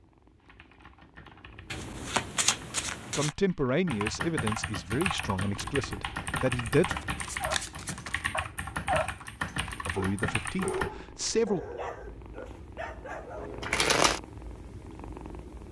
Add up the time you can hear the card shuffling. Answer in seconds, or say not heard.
4 s.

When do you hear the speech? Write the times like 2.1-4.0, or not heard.
3.1-7.0, 9.8-11.6.